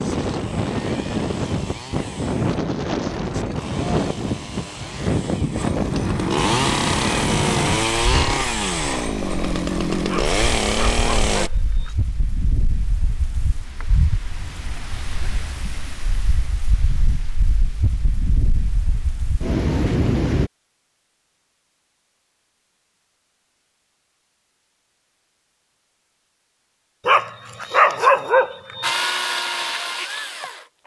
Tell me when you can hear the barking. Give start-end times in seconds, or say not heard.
10.1-11.9, 27.1-28.9.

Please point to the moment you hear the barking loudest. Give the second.
28 s.